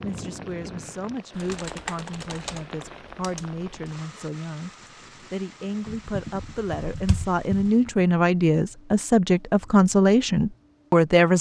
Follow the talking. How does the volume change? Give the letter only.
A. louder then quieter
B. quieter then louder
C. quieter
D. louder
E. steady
D.